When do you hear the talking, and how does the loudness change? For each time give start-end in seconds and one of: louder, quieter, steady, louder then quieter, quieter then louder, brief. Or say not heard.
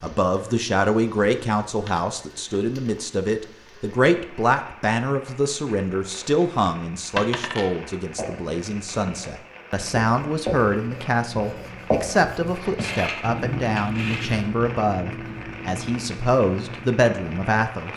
0.0-17.9 steady.